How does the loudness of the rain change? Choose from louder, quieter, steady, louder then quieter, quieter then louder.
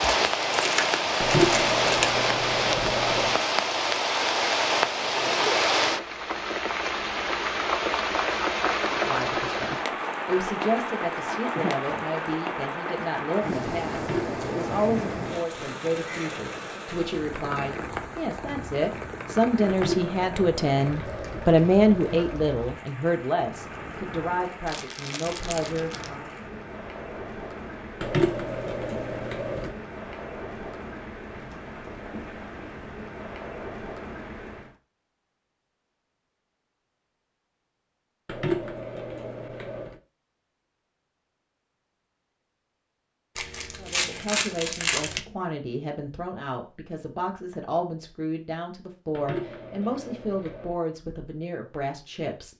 quieter.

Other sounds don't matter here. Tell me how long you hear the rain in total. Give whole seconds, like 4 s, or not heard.
35 s.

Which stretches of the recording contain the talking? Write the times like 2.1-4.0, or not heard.
8.9-26.4, 43.8-52.5.